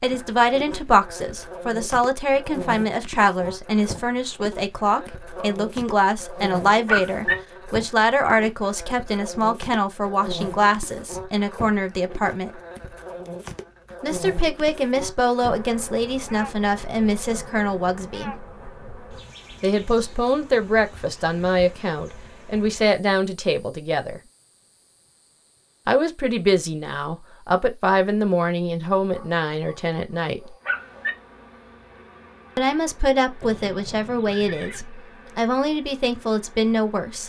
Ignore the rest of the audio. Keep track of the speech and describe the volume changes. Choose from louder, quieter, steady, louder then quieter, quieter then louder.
steady.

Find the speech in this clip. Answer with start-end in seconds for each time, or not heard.
0.0-12.5, 14.0-18.4, 19.6-24.2, 25.9-30.4, 32.5-37.2.